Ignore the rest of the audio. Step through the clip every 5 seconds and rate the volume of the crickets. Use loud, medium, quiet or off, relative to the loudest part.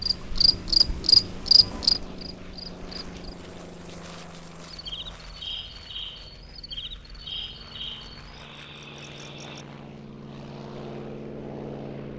loud, quiet, off.